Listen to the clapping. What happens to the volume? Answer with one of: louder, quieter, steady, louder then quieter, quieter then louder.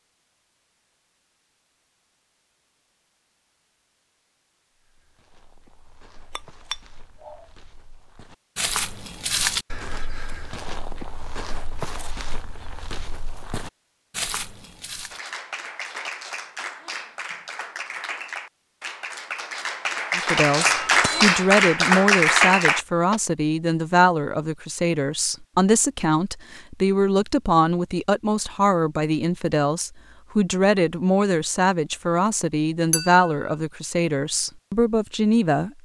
louder.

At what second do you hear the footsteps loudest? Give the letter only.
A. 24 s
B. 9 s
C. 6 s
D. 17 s
B.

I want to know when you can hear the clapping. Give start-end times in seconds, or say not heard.
15.1-23.2.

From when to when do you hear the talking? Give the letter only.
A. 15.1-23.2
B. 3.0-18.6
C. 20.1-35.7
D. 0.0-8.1
C.